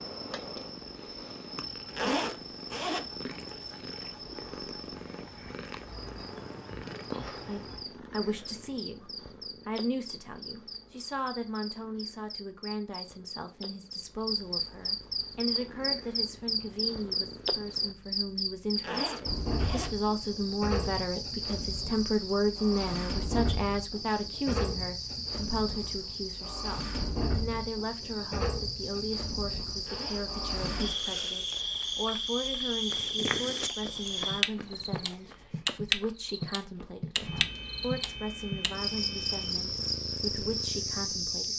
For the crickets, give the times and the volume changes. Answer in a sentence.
You can hear the crickets from 0.0 to 41.5 s, getting louder.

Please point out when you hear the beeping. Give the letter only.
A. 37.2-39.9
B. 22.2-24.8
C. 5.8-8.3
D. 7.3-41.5
A.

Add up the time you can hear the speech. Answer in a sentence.
The speech can be heard for 34 seconds in total.